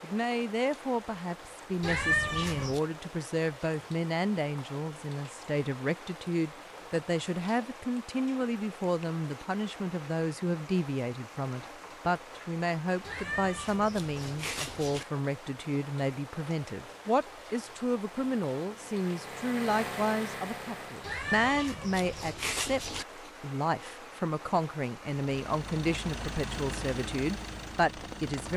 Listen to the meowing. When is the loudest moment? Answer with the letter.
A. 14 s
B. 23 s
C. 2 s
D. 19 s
C.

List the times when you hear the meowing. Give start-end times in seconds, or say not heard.
1.8-2.8, 13.0-15.1, 21.0-23.1.